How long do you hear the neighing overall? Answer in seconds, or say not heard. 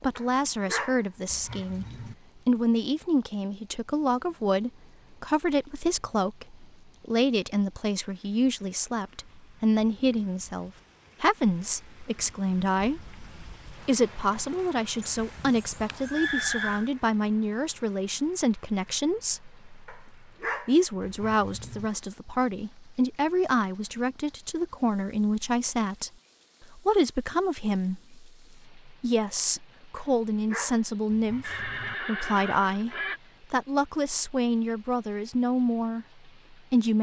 4 s.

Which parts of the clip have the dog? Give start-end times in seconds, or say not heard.
0.1-2.1, 19.9-21.9, 29.9-31.9.